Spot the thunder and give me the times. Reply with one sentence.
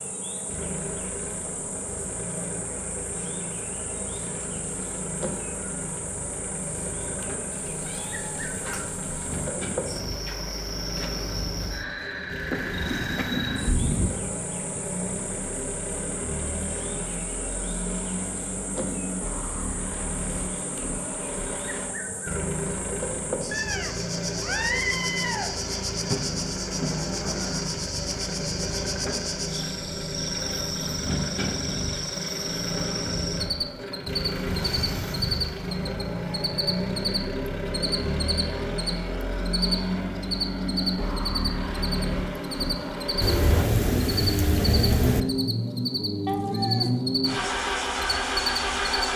The thunder can be heard from 12.6 to 14.1 s, from 26.1 to 27.6 s and from 43.2 to 45.2 s.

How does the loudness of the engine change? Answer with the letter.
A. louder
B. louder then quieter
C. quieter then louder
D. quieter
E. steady
A.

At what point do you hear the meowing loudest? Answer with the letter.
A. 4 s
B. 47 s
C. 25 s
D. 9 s
C.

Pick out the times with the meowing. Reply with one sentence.
The meowing can be heard from 7.5 to 9.5 s, from 23.5 to 25.5 s and from 46.2 to 47.0 s.